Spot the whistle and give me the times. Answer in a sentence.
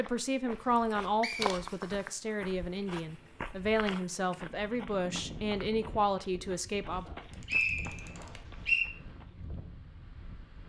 The whistle can be heard from 1.2 to 1.6 s and from 7.0 to 8.9 s.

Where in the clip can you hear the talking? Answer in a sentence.
You can hear the talking from 0.0 to 7.0 s.